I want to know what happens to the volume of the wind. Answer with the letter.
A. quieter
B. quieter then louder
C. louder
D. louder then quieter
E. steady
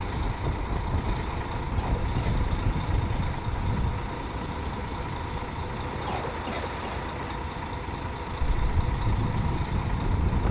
B.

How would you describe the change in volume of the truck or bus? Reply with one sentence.
The volume of the truck or bus stays about the same.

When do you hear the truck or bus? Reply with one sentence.
You can hear the truck or bus from 0.0 to 10.4 s.